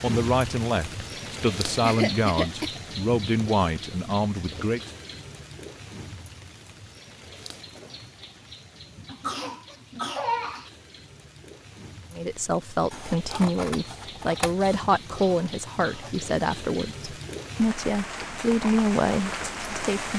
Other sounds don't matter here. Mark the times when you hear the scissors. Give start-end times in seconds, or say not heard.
12.9-14.8.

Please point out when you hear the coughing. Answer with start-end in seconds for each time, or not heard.
1.8-2.8, 9.1-10.7, 15.1-16.1.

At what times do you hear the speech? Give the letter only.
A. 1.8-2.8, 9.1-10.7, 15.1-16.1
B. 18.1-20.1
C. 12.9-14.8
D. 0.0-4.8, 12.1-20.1
D.